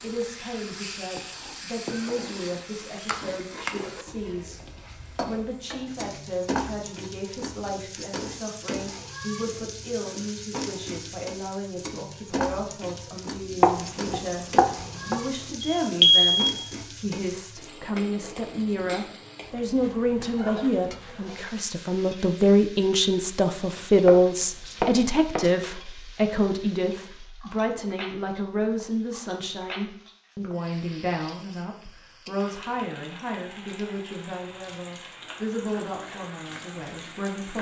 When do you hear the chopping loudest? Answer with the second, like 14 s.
14 s.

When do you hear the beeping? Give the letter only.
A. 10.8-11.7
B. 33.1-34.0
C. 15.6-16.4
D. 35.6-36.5
C.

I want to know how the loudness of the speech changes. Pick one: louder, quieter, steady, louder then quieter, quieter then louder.
louder then quieter.